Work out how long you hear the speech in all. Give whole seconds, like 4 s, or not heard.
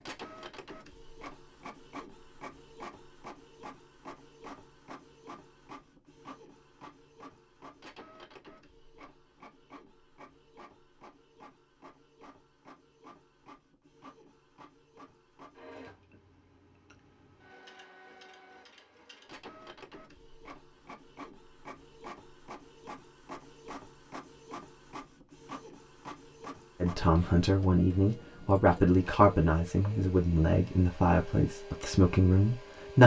6 s.